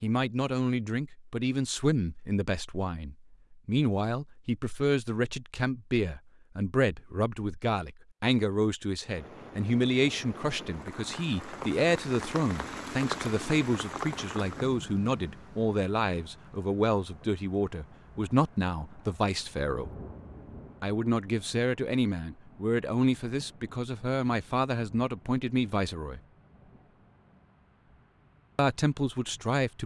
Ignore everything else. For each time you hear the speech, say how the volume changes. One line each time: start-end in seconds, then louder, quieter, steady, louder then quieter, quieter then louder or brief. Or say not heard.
0.0-19.9 steady
20.8-26.2 steady
28.6-29.8 brief.